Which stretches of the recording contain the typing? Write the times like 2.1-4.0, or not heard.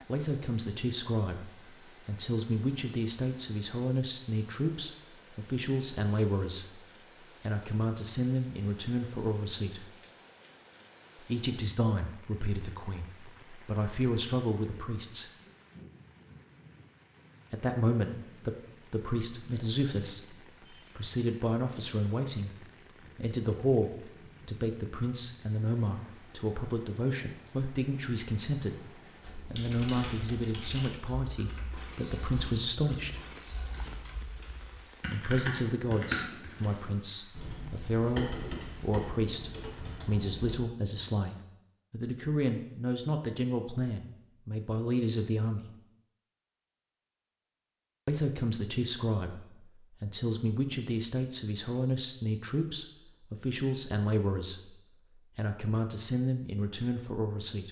29.2-40.6.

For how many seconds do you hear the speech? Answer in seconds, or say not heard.
50 s.